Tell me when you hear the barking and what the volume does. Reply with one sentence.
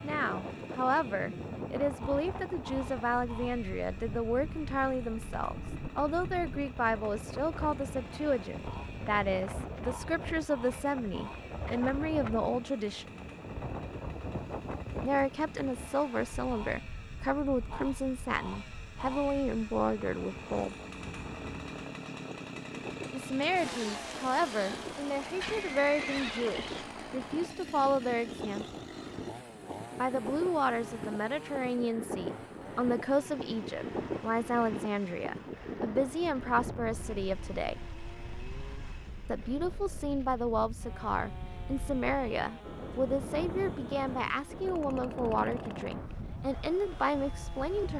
The barking can't be heard in this clip.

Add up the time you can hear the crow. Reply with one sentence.
The crow can't be heard in this clip.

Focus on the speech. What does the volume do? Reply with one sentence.
The loudness of the speech stays about the same.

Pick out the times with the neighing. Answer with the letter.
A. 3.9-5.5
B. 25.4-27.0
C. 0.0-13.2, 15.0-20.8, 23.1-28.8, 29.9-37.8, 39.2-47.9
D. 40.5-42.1
B.